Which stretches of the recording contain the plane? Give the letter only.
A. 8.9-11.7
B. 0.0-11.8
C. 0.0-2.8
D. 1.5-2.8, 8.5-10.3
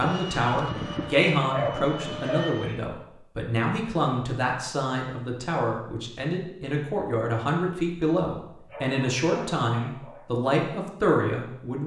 C.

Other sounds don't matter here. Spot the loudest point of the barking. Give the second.
2 s.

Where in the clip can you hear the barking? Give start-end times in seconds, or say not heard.
1.5-2.8, 8.5-10.3.